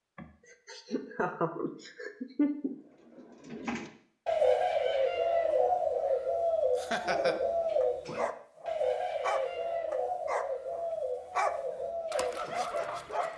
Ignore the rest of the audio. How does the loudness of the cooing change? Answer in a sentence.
The volume of the cooing goes down.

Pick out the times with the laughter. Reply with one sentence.
The laughter can be heard from 0.1 to 2.8 s and from 6.8 to 7.3 s.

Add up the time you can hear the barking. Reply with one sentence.
The barking can be heard for 6 seconds in total.